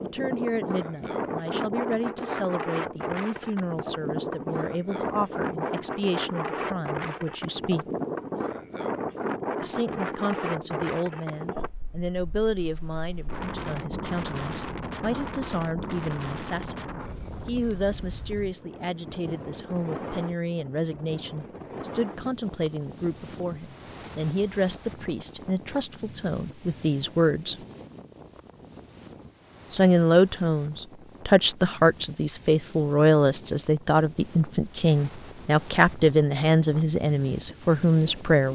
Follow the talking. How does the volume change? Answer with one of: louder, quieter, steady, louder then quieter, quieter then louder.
louder.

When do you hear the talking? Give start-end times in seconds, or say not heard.
0.0-7.8, 9.6-27.6, 29.7-38.5.